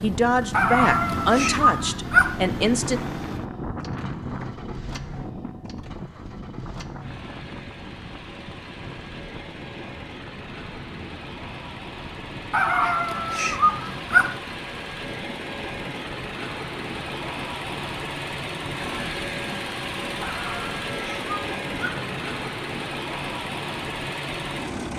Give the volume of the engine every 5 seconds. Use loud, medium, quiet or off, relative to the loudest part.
medium, medium, medium, loud, loud.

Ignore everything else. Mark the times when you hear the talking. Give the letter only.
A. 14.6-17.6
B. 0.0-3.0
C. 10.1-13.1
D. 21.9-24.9
B.